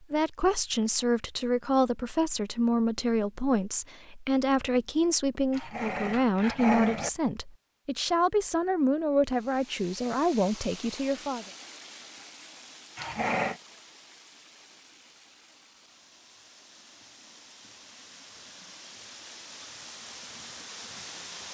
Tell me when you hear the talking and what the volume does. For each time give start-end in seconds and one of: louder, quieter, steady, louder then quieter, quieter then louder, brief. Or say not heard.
0.1-11.4 steady.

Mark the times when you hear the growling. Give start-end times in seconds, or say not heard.
5.5-7.1, 12.9-13.6.